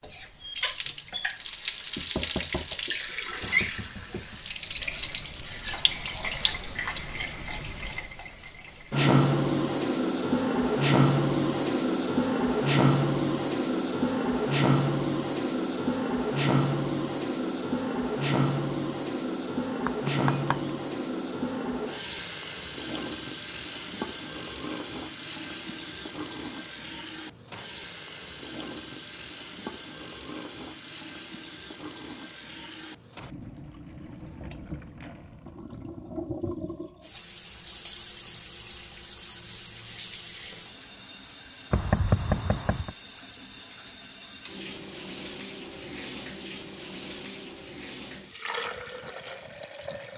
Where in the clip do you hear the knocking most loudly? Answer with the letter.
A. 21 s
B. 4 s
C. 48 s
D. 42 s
D.